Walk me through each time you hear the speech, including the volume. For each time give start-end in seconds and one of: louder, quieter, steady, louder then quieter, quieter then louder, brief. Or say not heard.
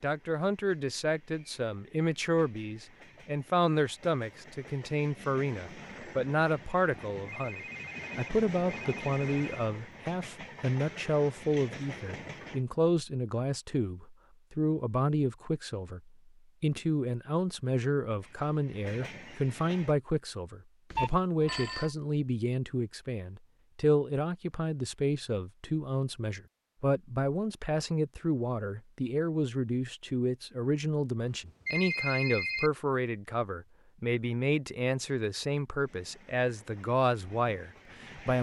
0.0-38.3 steady.